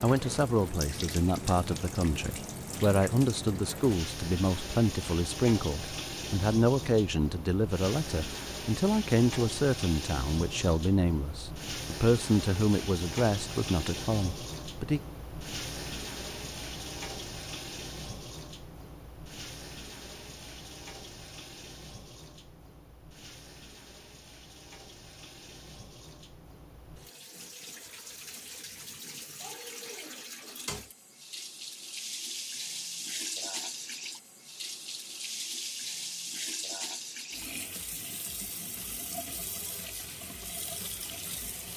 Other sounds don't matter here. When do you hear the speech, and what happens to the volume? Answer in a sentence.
You can hear the speech from 0.0 to 15.0 s, at a steady volume.